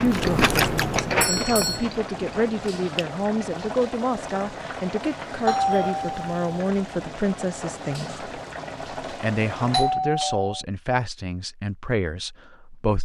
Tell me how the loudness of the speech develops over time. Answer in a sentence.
The volume of the speech stays about the same.